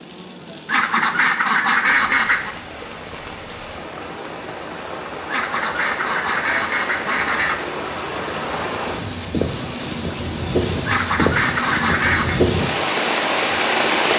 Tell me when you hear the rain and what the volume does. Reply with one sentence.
You can hear the rain from 0.0 to 14.1 s, getting louder.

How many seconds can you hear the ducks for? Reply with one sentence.
The ducks can be heard for 6 seconds in total.